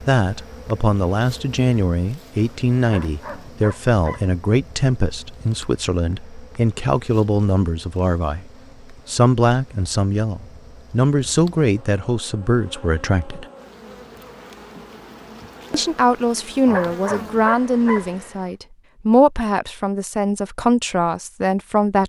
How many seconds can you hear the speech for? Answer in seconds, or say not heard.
20 s.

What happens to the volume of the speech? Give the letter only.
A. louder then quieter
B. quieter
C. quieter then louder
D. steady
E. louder
D.